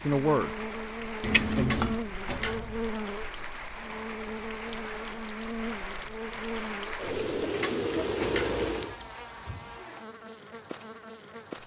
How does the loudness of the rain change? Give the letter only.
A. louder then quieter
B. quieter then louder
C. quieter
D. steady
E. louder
E.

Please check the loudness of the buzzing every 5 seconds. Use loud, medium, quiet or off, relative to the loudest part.
loud, loud, medium.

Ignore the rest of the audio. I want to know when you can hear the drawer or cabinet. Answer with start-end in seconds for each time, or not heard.
1.6-2.9, 7.6-8.7.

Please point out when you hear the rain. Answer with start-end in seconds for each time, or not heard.
0.0-8.9.